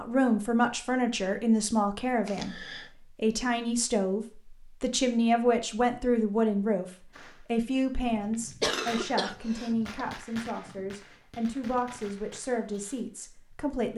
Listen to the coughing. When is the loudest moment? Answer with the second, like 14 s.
9 s.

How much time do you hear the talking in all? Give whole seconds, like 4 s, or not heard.
14 s.